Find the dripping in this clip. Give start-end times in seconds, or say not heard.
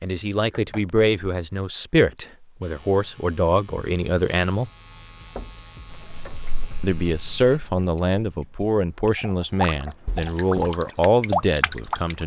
5.9-12.2.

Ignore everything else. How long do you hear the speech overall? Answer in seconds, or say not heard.
10 s.